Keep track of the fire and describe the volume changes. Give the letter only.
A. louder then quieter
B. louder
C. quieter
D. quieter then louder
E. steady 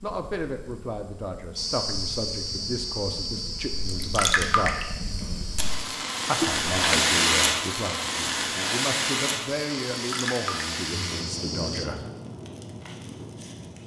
A.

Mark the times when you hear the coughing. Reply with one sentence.
The coughing can be heard from 6.4 to 7.0 s.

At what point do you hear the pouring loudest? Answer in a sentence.
The volume of the pouring peaks at 4 seconds.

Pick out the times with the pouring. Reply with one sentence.
You can hear the pouring from 3.9 to 4.8 s and from 10.1 to 10.7 s.